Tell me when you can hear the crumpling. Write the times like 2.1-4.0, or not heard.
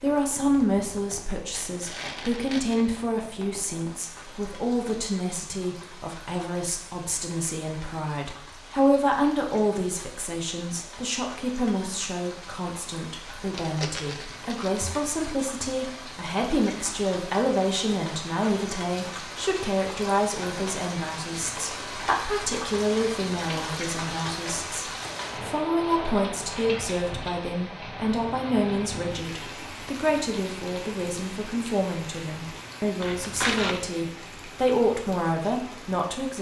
1.5-3.0, 13.6-15.8, 33.0-33.8.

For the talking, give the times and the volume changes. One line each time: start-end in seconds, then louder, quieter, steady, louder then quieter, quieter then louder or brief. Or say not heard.
0.0-36.3 steady.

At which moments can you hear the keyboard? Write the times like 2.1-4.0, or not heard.
not heard.